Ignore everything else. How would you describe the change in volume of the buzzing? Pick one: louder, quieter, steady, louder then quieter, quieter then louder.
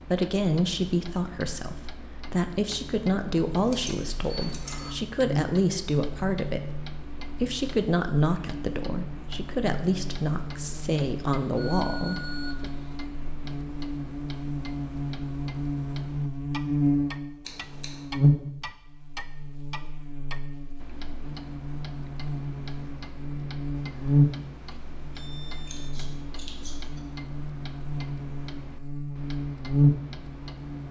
louder.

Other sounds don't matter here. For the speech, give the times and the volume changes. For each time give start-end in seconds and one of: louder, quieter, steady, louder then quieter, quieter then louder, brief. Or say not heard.
0.0-12.7 steady.